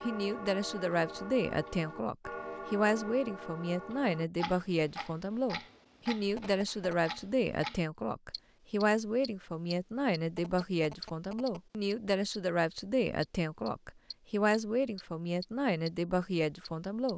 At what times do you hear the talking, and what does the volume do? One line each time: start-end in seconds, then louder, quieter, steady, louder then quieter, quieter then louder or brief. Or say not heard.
0.0-17.1 steady.